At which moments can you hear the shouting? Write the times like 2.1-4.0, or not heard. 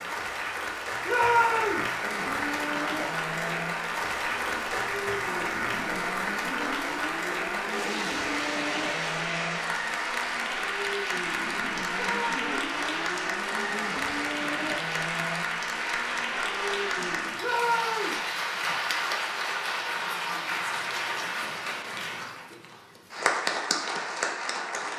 1.1-1.9, 11.9-12.8, 17.4-18.2.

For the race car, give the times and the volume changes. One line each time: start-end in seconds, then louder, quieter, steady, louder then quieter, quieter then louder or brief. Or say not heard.
1.9-17.4 steady.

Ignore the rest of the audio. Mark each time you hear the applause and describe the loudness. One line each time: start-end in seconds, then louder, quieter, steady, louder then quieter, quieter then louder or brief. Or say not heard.
0.0-24.9 steady.